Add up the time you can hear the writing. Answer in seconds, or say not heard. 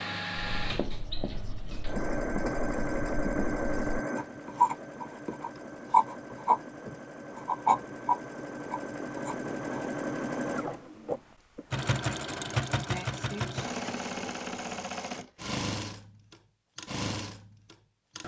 9 s.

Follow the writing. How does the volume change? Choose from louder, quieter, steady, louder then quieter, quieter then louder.
louder then quieter.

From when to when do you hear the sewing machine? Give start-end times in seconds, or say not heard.
0.0-18.2.